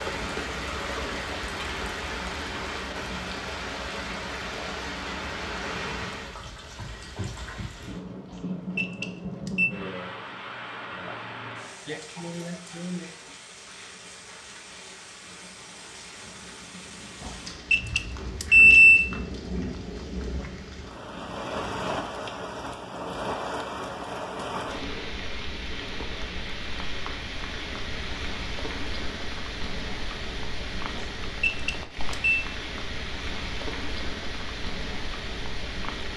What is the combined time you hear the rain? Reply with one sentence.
The rain can be heard for 36 seconds in total.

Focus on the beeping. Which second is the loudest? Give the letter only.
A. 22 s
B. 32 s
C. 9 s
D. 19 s
D.